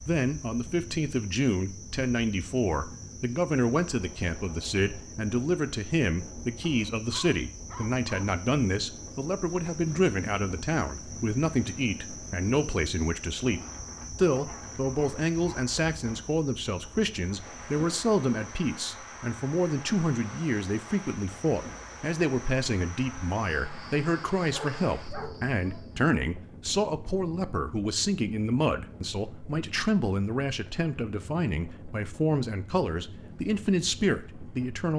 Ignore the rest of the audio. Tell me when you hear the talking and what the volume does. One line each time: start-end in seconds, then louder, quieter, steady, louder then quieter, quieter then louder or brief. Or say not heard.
0.1-34.9 steady.